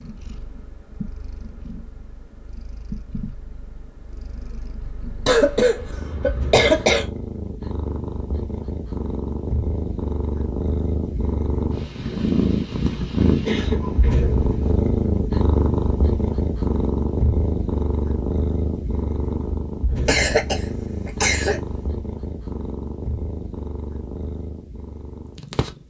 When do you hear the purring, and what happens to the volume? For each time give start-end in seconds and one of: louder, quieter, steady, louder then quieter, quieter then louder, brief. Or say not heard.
0.0-25.8 louder then quieter.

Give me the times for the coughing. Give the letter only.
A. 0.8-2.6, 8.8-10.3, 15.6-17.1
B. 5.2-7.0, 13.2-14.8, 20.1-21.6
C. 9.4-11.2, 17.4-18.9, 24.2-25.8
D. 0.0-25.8
B.